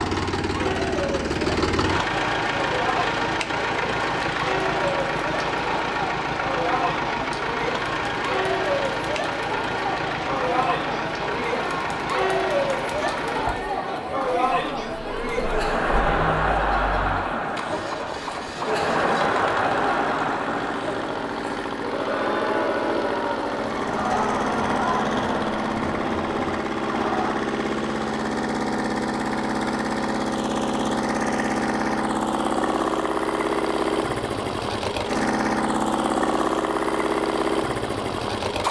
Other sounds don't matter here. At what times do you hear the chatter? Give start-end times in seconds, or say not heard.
0.2-27.4.